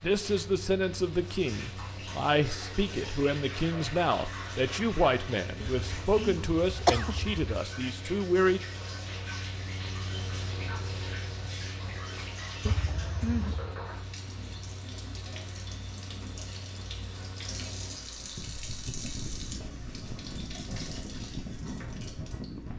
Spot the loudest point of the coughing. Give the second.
7 s.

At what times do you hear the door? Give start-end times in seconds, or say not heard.
not heard.